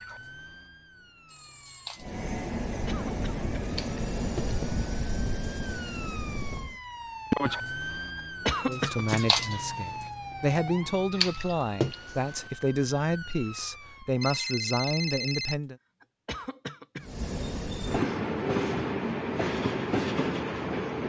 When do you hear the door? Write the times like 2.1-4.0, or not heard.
not heard.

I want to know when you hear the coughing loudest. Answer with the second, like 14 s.
9 s.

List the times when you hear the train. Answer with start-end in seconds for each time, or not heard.
2.0-6.8, 17.0-21.0.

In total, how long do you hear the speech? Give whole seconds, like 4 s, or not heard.
7 s.